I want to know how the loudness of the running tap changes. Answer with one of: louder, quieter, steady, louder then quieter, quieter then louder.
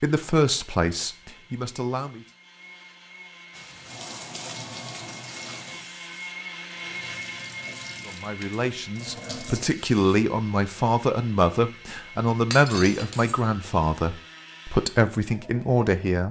quieter then louder.